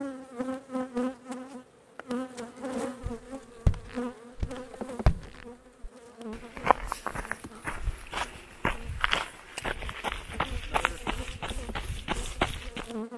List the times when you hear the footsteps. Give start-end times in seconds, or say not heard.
3.0-12.9.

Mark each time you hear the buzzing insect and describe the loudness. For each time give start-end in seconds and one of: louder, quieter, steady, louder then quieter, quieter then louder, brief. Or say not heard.
0.0-13.1 quieter then louder.